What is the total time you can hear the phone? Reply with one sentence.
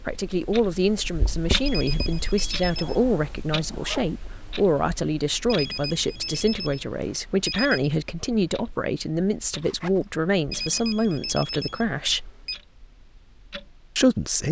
The phone can be heard for 6 seconds in total.